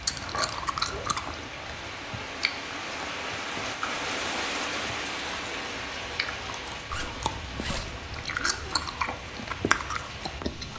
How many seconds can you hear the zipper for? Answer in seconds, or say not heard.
3 s.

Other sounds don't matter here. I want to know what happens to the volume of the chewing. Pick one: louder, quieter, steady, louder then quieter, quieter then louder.
quieter then louder.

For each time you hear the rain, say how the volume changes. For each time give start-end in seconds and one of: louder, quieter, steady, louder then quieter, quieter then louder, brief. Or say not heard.
0.0-10.7 louder then quieter.